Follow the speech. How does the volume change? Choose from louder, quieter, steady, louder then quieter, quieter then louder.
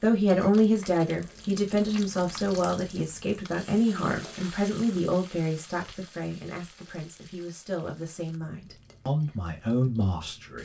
quieter then louder.